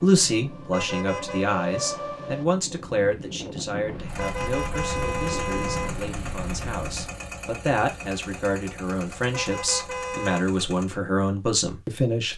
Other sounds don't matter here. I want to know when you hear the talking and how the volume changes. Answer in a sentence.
You can hear the talking from 0.0 to 12.3 s, getting quieter then louder.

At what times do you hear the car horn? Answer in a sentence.
The car horn can be heard from 0.7 to 1.4 s, from 4.2 to 5.9 s and from 9.3 to 10.4 s.